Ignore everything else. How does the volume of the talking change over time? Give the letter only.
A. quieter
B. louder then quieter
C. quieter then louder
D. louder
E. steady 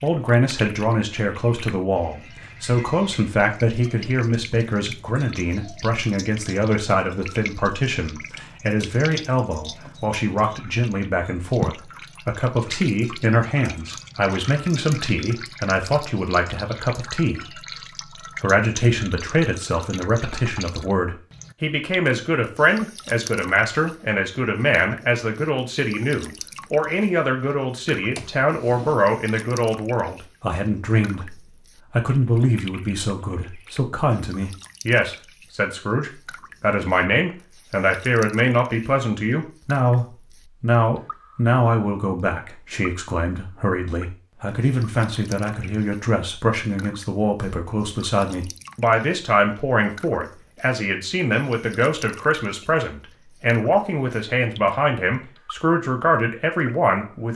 E.